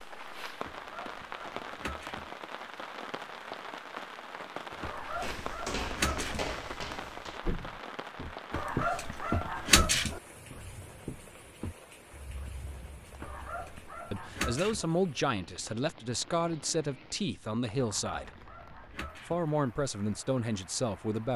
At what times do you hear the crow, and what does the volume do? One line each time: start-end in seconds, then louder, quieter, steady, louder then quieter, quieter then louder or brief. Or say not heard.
not heard.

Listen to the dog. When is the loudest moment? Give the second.
10 s.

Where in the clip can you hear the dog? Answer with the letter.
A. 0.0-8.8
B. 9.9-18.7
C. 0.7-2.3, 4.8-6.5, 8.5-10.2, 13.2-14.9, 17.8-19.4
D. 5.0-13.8
C.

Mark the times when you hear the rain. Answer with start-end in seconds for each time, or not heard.
0.0-21.3.